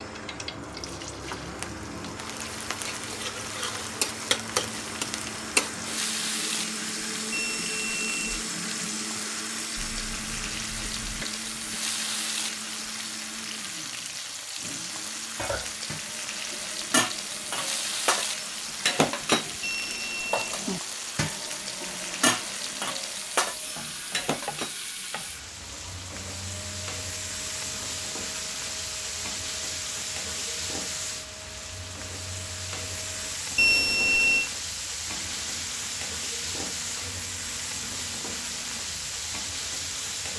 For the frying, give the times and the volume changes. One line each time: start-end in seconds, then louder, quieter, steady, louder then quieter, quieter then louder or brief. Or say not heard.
0.0-40.3 steady.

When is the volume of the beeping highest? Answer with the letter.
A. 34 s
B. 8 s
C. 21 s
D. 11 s
A.